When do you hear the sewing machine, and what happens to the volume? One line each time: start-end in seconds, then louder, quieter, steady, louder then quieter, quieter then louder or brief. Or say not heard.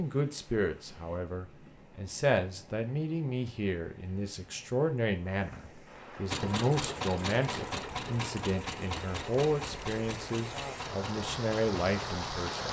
6.3-12.6 quieter.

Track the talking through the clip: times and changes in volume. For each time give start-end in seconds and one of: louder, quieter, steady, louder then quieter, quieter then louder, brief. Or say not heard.
0.0-12.6 steady.